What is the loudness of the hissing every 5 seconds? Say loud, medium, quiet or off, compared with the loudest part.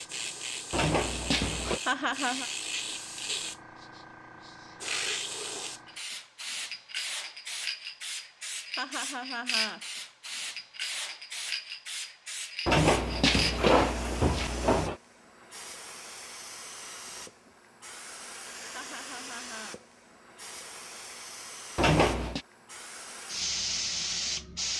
loud, loud, loud, medium, loud.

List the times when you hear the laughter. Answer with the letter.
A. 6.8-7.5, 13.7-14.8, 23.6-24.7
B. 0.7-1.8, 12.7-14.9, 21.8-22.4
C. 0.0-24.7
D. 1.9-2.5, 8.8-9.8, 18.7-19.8
D.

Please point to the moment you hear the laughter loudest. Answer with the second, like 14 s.
2 s.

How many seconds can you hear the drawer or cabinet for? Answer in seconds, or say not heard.
4 s.